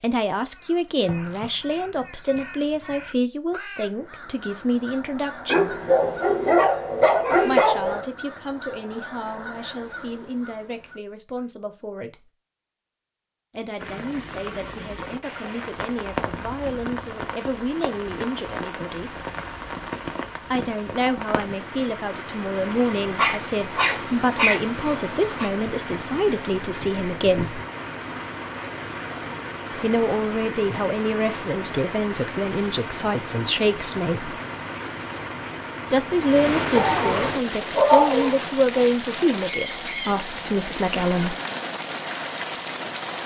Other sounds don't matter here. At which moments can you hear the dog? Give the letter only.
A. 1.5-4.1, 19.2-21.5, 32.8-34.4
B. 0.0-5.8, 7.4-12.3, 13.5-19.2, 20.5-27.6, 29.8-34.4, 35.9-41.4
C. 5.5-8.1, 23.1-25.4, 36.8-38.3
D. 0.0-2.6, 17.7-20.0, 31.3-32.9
C.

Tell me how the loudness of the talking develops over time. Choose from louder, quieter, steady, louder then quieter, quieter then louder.
quieter then louder.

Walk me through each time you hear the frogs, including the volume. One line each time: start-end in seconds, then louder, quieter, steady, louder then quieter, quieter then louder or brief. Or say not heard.
not heard.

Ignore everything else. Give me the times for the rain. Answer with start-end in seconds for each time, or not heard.
13.8-43.2.